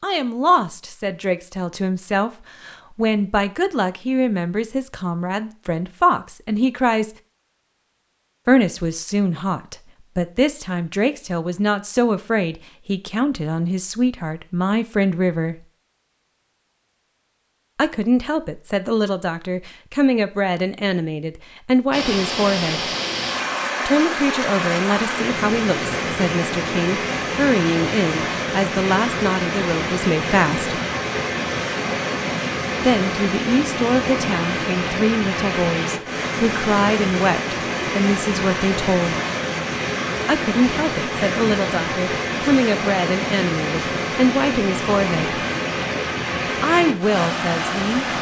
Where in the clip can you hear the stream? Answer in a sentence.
You can hear the stream from 21.9 to 48.1 s.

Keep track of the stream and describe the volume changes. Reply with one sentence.
The volume of the stream stays about the same.